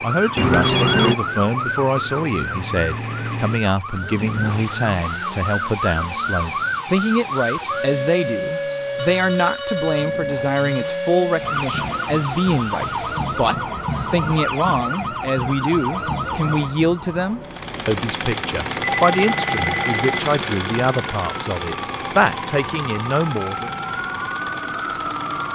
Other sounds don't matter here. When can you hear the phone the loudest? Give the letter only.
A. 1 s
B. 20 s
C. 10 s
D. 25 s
A.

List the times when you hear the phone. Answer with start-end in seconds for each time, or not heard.
0.3-1.1, 8.9-10.9, 18.8-20.2.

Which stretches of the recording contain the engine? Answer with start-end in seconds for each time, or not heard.
0.0-13.6, 17.4-25.4.